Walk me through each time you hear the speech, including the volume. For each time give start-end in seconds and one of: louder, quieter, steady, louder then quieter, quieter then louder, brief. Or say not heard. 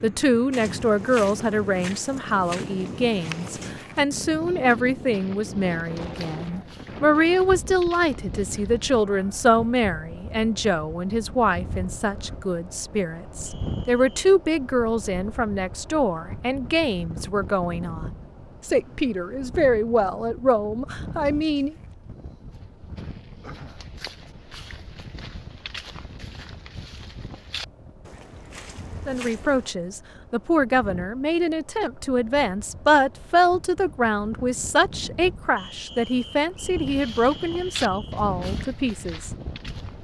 0.0-21.8 steady
29.1-39.3 steady.